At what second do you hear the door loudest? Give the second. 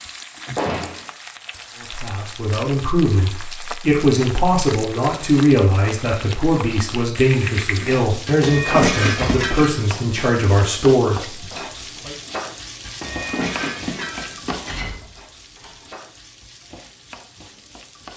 1 s.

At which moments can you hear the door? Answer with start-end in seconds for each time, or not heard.
0.6-1.1, 9.0-9.5, 14.7-15.9.